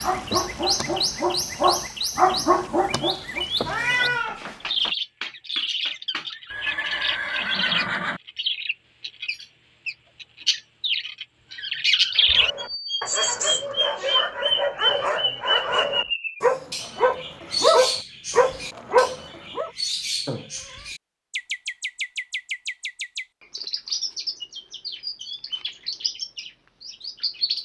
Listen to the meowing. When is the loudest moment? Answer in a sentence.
The loudest moment of the meowing is at 4 seconds.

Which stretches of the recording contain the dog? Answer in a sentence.
You can hear the dog from 0.0 to 3.5 s and from 12.2 to 19.7 s.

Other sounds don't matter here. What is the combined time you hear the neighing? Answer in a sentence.
The neighing can be heard for 2 seconds in total.